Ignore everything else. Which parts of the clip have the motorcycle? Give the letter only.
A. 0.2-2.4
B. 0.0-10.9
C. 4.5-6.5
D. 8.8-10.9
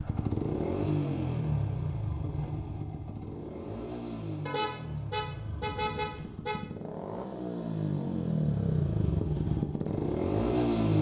B.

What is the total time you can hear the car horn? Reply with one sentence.
You can hear the car horn for 2 seconds altogether.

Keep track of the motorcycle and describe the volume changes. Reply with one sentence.
The loudness of the motorcycle goes down, then up.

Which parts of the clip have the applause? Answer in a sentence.
The applause can't be heard in this clip.